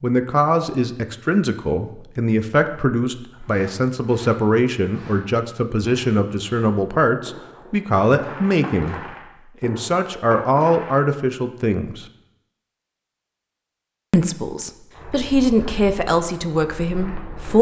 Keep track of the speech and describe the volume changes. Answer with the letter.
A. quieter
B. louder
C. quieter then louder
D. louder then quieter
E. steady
E.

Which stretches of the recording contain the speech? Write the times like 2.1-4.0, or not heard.
0.0-12.1, 14.1-17.5.